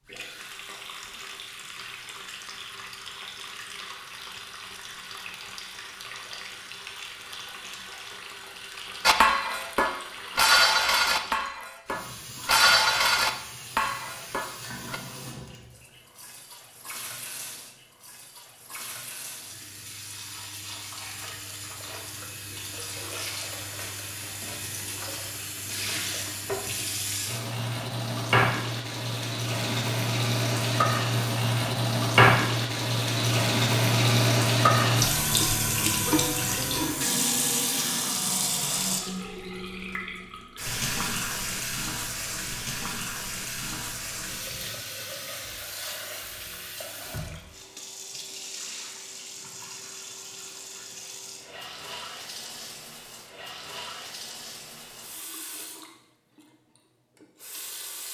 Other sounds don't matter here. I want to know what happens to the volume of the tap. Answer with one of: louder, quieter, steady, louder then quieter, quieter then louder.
louder then quieter.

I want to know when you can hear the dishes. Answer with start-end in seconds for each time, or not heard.
9.1-15.0.